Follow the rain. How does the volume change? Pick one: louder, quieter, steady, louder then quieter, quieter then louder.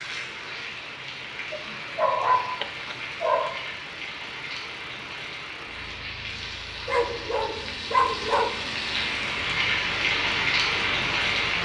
louder.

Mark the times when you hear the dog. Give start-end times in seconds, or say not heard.
1.5-3.5, 6.8-8.5.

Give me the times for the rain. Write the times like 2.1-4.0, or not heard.
0.0-11.6.